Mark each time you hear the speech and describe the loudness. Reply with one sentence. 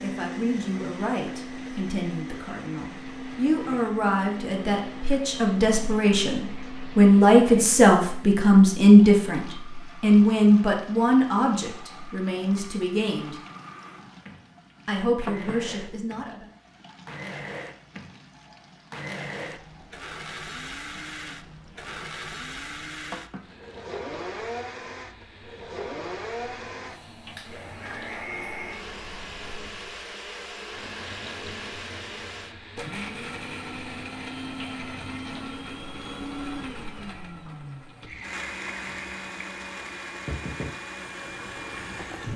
You can hear the speech from 0.0 to 13.4 s, getting louder then quieter; and briefly from 14.8 to 16.4 s.